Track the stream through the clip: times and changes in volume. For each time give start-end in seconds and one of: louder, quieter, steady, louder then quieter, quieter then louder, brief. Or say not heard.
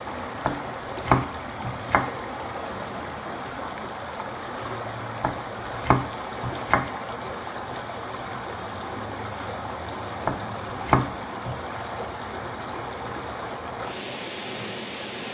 0.0-15.2 steady.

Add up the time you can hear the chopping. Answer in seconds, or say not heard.
5 s.